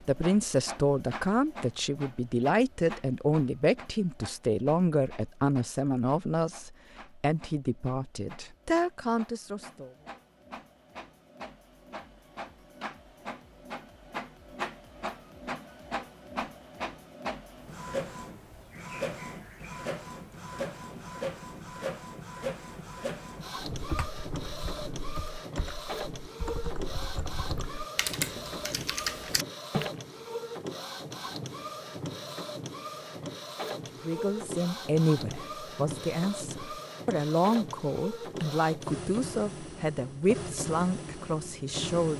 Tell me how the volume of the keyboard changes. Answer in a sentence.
The loudness of the keyboard goes up.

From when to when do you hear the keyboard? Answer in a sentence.
You can hear the keyboard from 23.7 to 29.9 s.